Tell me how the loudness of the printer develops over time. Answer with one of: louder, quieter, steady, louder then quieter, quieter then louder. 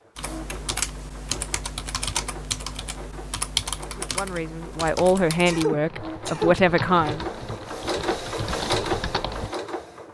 louder.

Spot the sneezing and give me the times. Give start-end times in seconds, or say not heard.
5.5-6.6.